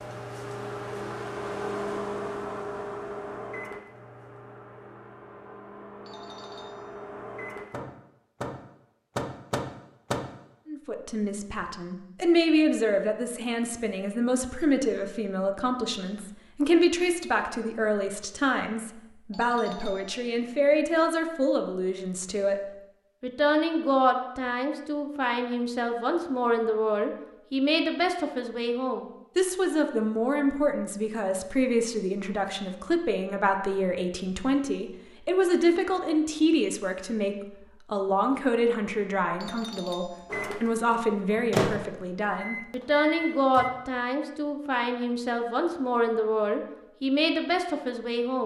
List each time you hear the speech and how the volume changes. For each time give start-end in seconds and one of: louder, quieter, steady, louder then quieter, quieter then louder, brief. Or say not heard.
10.7-22.6 steady
23.2-48.4 steady.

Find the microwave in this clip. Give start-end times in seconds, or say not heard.
0.0-10.3, 40.2-43.7.